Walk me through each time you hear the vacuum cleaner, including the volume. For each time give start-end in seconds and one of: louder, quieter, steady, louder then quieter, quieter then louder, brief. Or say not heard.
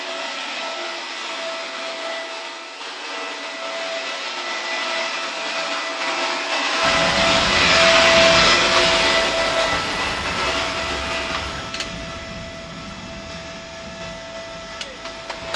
0.0-15.5 louder then quieter.